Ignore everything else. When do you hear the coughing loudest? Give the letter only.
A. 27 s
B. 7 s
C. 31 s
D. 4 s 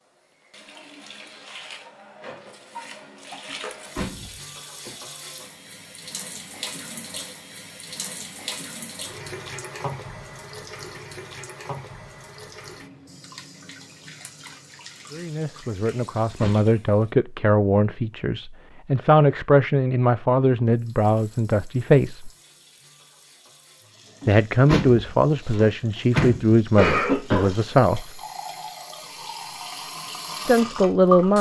A.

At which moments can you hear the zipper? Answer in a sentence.
The zipper can't be heard in this clip.